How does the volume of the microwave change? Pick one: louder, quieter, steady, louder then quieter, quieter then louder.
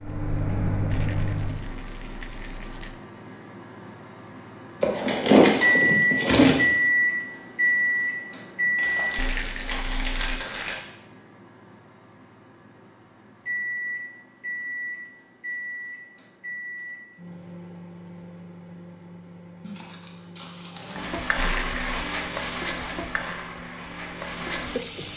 louder then quieter.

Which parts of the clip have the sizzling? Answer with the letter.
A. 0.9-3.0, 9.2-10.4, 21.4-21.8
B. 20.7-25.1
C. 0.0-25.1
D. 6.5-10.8
B.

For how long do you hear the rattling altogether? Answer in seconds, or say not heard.
4 s.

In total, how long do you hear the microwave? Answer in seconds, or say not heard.
25 s.